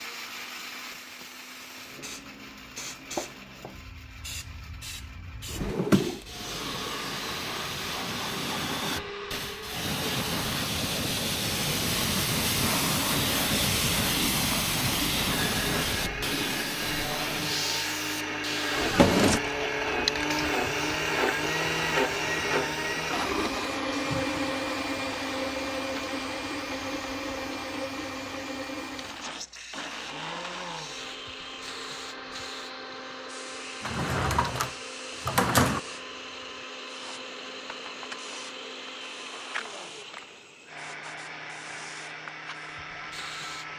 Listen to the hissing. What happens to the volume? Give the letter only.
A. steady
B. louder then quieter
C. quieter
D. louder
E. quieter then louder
B.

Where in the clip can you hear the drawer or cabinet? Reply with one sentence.
The drawer or cabinet can be heard from 5.5 to 6.2 s, from 18.8 to 19.4 s and from 33.8 to 35.8 s.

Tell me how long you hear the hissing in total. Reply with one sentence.
The hissing can be heard for 44 seconds in total.